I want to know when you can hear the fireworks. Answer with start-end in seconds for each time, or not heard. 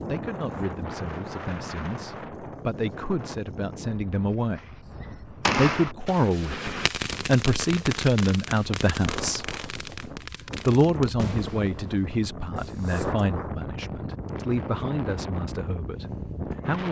4.5-13.1.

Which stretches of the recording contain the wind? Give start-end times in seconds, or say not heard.
0.0-16.8.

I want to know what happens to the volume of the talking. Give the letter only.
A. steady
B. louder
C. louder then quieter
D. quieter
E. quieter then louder
C.